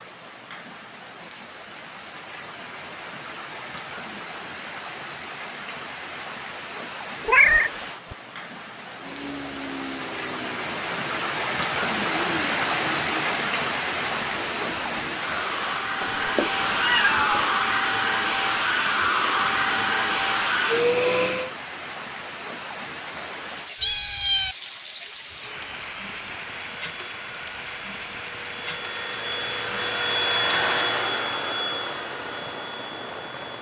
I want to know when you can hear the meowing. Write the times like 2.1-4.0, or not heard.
7.2-8.2, 16.0-17.5, 23.8-24.6.